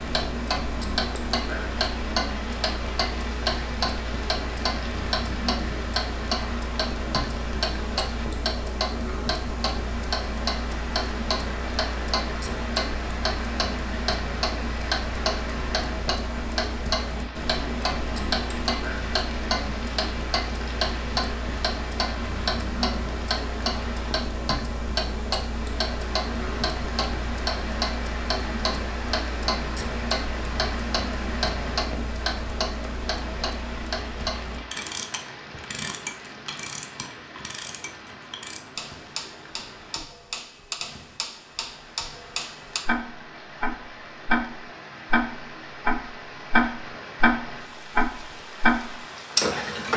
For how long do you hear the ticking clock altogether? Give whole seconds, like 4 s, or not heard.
50 s.